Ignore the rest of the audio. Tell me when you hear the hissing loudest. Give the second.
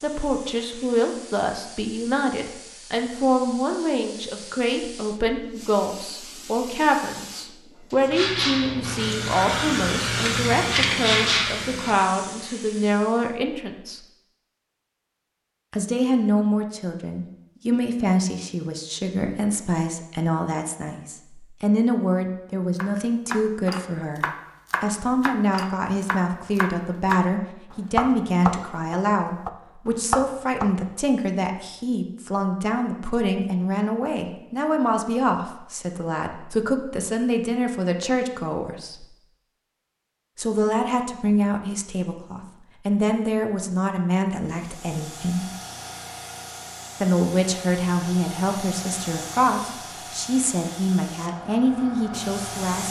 11 s.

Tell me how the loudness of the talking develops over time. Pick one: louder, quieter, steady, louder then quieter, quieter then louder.
steady.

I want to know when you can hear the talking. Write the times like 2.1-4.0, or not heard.
0.0-14.0, 15.7-39.0, 40.4-45.5, 47.0-52.8.